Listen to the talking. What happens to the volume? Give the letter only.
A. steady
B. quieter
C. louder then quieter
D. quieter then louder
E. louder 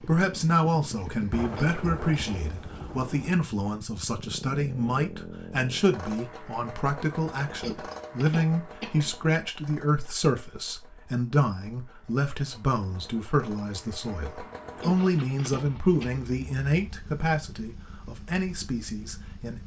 A.